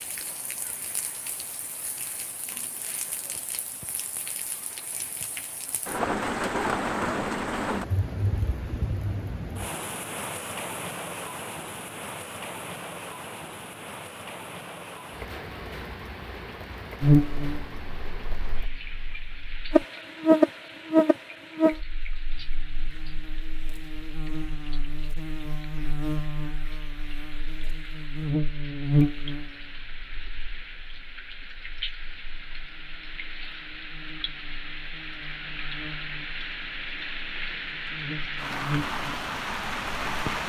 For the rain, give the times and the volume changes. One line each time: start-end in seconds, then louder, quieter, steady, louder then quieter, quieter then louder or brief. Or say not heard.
0.0-40.4 quieter then louder.